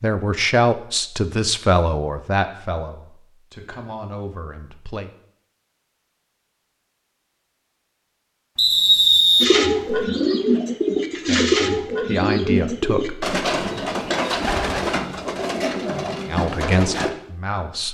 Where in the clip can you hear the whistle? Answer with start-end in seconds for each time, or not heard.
8.6-9.9.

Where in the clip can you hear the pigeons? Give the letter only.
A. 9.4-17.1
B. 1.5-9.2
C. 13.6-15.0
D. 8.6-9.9
A.